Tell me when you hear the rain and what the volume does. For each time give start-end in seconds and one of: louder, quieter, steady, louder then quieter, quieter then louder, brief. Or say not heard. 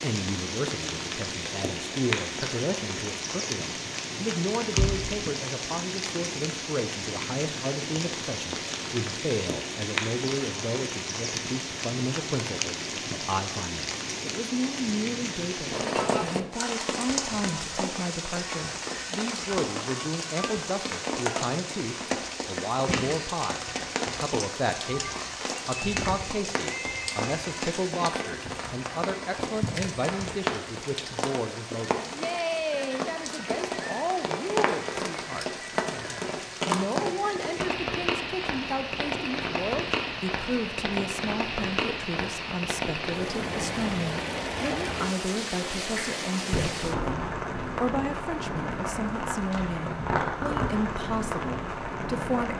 0.0-52.5 steady.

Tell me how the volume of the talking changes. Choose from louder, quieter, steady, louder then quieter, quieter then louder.
steady.